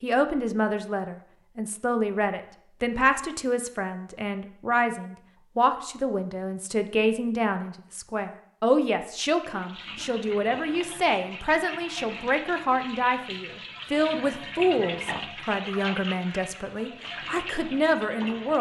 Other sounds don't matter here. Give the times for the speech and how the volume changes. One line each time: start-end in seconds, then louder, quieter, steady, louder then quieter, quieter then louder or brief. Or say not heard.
0.0-18.5 steady.